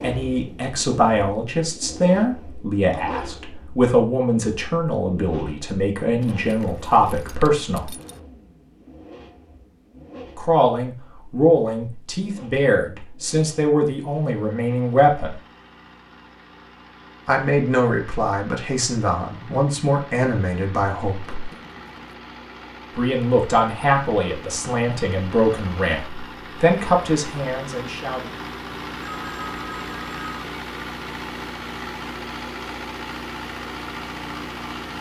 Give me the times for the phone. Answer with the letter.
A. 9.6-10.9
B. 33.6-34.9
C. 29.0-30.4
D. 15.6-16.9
C.